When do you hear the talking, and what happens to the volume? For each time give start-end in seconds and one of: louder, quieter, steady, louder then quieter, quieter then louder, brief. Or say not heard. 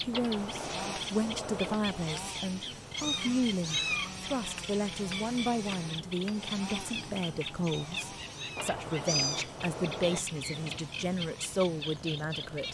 0.0-12.6 steady.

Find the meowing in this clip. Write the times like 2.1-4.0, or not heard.
3.0-4.1, 7.6-9.5.